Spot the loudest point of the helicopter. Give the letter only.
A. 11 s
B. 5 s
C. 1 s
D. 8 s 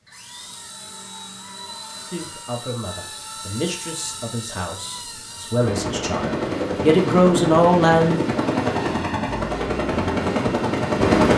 A.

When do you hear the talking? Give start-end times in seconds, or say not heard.
2.1-8.2.